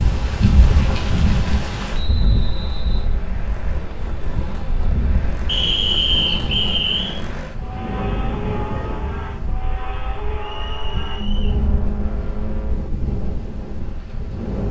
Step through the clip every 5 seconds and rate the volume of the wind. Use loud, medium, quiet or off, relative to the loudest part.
loud, medium, medium.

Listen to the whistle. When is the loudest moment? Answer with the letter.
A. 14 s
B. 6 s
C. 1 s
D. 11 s
B.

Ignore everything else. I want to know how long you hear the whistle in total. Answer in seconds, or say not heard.
4 s.